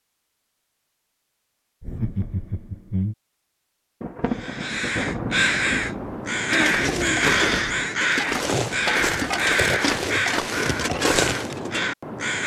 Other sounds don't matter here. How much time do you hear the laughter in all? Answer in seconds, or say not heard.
2 s.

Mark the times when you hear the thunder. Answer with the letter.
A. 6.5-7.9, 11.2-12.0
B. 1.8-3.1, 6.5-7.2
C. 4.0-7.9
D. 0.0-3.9
C.